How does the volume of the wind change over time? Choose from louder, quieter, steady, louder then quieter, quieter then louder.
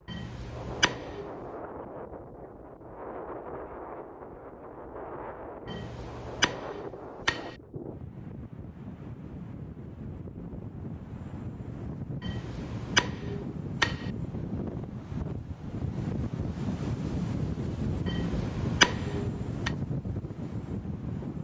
louder.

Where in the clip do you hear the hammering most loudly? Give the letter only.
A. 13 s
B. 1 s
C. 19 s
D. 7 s
C.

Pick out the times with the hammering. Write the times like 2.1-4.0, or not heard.
0.1-1.4, 5.7-7.5, 12.2-14.1, 18.1-19.7.